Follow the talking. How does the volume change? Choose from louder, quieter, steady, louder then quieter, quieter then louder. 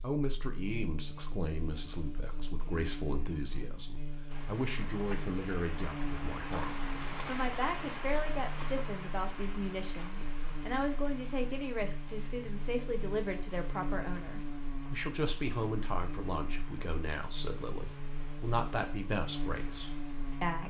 steady.